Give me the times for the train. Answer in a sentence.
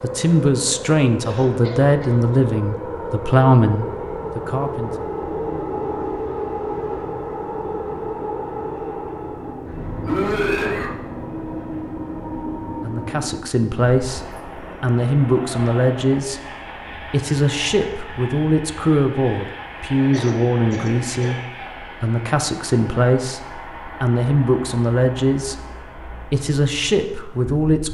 The train can be heard from 0.0 to 27.8 s.